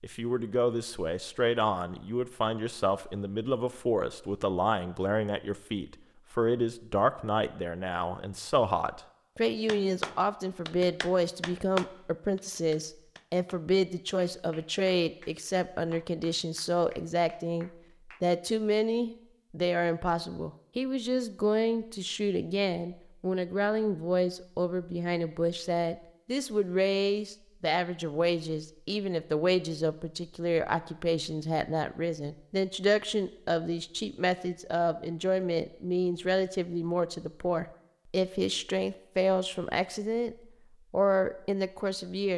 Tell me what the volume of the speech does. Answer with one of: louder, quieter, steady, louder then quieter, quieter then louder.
steady.